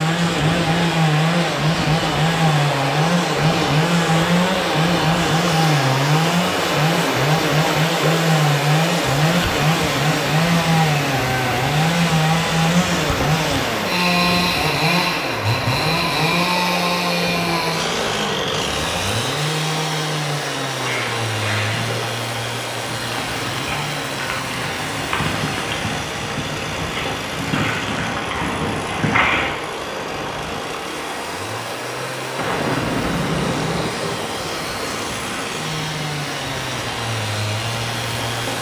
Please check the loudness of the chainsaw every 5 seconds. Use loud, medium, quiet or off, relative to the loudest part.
loud, loud, loud, loud, medium, quiet, quiet, medium.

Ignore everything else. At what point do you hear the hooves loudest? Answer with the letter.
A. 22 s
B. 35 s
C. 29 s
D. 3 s
C.